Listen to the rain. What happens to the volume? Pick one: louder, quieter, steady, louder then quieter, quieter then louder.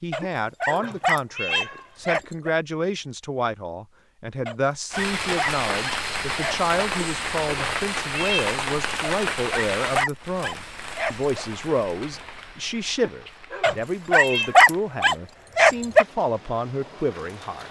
quieter.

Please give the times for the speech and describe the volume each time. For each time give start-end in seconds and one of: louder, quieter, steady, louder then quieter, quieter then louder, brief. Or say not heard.
0.0-17.6 steady.